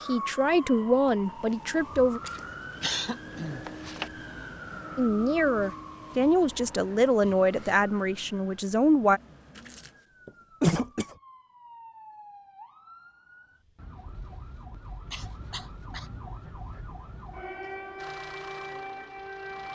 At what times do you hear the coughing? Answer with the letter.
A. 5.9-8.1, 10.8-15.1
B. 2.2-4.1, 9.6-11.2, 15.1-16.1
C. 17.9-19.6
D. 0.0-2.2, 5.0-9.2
B.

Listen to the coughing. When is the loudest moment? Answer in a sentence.
The volume of the coughing peaks at 11 seconds.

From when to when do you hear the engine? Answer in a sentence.
The engine can be heard from 17.9 to 19.6 s.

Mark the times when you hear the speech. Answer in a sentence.
The speech can be heard from 0.0 to 2.2 s and from 5.0 to 9.2 s.